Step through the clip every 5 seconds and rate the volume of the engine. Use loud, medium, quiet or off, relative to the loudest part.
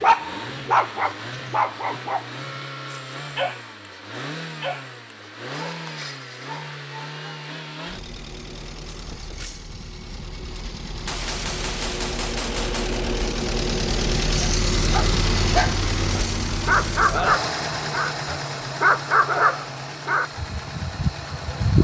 medium, medium, loud, loud, medium.